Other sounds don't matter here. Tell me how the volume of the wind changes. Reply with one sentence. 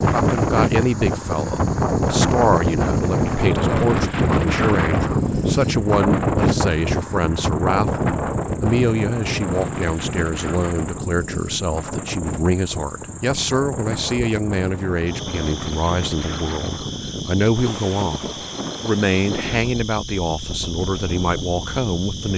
The loudness of the wind goes down.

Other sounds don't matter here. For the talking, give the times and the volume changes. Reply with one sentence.
The talking can be heard from 0.0 to 22.3 s, at a steady volume.